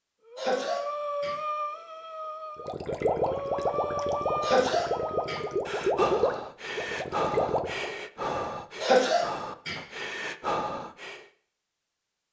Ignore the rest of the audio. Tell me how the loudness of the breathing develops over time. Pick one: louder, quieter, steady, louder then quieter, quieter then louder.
steady.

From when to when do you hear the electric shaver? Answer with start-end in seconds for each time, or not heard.
not heard.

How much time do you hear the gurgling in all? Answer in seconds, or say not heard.
5 s.